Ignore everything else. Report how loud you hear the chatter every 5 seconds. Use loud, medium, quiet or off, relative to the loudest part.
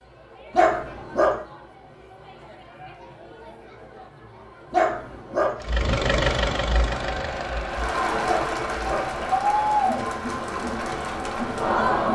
quiet, loud, loud.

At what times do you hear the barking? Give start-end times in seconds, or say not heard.
0.5-1.4, 4.7-5.5, 8.2-9.1.